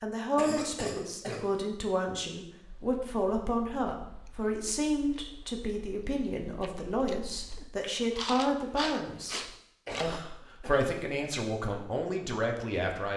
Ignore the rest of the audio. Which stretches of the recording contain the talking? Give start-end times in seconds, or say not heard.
0.0-13.1.